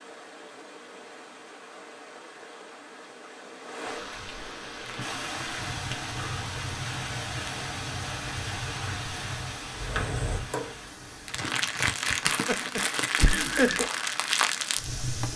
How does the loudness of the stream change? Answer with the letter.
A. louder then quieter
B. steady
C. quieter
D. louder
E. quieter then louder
A.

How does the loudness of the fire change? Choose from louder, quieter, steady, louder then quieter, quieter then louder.
louder.